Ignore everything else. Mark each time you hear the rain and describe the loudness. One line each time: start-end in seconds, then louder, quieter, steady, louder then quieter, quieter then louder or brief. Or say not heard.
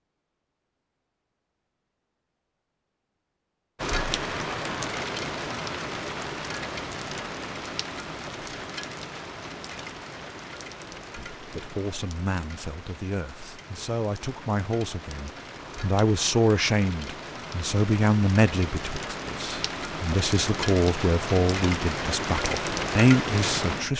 3.8-23.9 quieter then louder.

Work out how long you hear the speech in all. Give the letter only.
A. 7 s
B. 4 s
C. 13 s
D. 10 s
C.